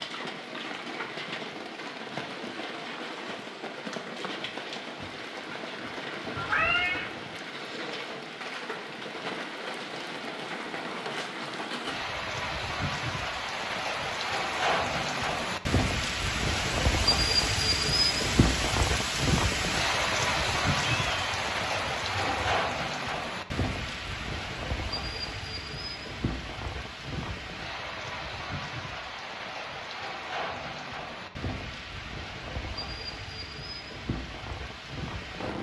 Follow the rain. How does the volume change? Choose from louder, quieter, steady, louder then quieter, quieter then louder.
louder then quieter.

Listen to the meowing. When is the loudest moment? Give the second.
7 s.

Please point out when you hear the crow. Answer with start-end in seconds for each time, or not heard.
not heard.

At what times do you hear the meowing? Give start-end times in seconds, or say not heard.
6.3-7.1, 20.8-22.6.